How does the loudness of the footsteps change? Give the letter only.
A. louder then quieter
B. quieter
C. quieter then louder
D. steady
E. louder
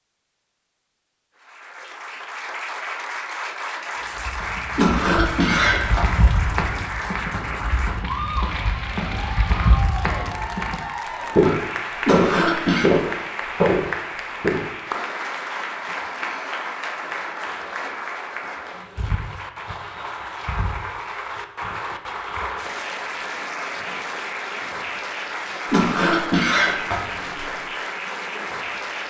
E.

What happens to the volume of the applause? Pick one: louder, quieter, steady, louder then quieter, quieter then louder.
steady.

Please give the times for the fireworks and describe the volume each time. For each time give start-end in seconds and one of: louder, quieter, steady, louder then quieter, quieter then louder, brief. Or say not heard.
not heard.